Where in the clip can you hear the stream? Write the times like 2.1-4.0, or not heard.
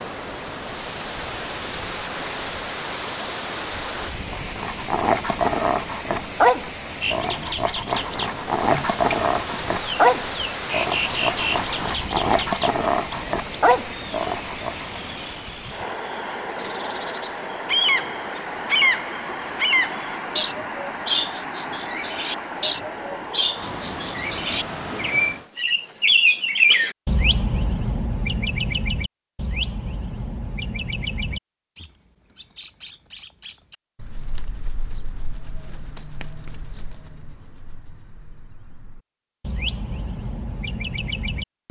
0.0-25.5.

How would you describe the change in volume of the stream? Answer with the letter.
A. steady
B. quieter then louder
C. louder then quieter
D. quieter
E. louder
A.